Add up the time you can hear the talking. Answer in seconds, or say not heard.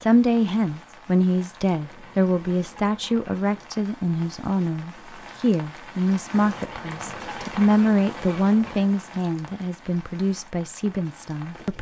12 s.